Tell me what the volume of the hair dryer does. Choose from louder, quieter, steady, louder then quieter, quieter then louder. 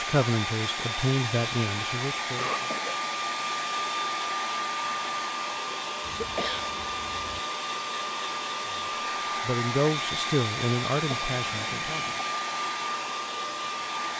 steady.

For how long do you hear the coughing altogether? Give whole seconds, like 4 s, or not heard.
3 s.